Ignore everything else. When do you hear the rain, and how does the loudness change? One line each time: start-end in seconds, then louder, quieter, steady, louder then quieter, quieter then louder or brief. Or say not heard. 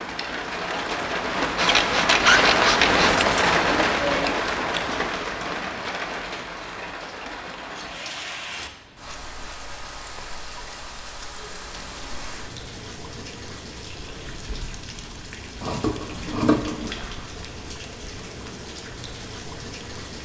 0.0-20.1 quieter.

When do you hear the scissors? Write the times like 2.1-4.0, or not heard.
1.6-3.1, 7.7-9.6, 15.6-16.9.